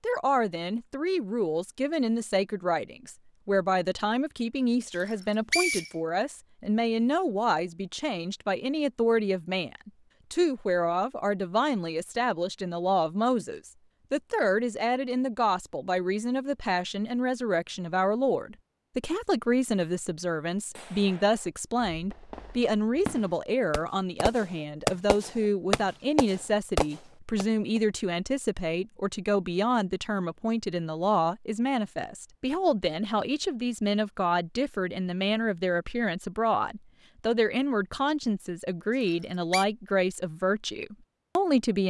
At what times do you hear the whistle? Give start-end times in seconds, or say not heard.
5.0-5.9, 39.0-39.6.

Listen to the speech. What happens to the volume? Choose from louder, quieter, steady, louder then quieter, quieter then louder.
steady.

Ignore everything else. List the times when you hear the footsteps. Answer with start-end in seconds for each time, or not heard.
not heard.